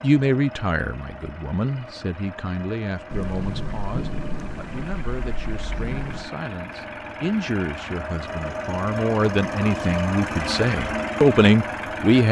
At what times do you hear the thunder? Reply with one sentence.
The thunder can be heard from 3.1 to 6.3 s.